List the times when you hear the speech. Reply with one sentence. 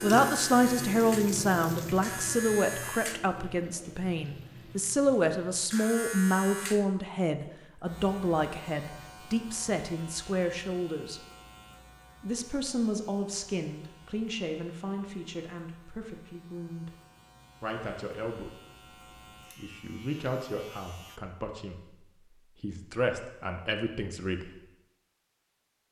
You can hear the speech from 0.0 to 11.2 s, from 12.2 to 16.9 s, from 17.6 to 18.6 s and from 19.6 to 24.6 s.